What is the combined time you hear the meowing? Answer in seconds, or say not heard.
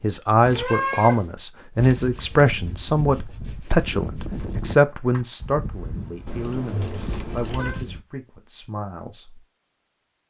2 s.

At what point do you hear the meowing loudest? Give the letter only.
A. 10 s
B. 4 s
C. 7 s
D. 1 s
D.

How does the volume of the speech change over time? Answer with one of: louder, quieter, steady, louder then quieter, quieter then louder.
quieter.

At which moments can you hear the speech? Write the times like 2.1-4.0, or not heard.
0.0-9.4.